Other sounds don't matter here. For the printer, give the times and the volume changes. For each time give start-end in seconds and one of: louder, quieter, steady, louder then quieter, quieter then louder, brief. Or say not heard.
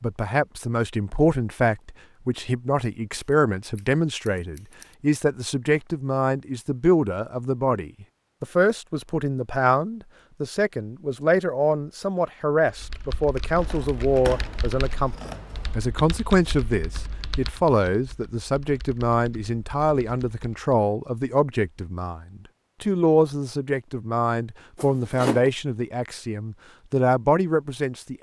not heard.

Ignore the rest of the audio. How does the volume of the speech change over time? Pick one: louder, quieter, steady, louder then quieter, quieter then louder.
steady.